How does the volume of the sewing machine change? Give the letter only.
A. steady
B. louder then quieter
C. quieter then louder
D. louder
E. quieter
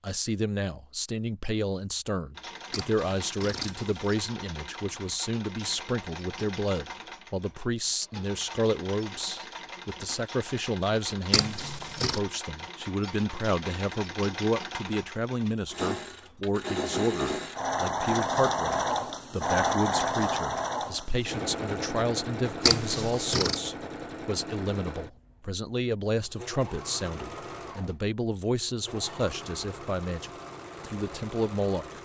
B.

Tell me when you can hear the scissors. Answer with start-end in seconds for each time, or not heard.
2.7-4.0, 11.3-12.2, 22.6-23.6.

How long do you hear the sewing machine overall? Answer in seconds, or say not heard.
30 s.